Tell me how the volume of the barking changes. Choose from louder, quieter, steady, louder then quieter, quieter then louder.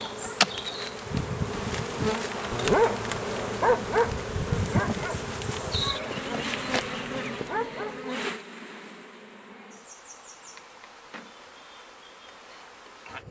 quieter then louder.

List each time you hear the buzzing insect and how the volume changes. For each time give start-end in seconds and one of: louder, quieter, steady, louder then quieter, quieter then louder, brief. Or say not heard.
0.0-13.2 quieter.